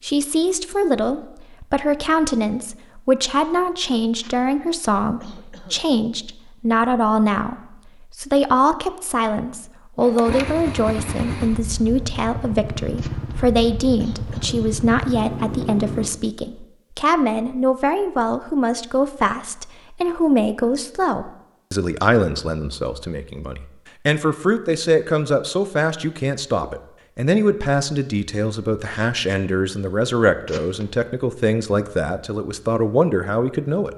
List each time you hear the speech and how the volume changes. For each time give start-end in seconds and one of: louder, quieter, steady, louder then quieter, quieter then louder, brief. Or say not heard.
0.0-33.9 steady.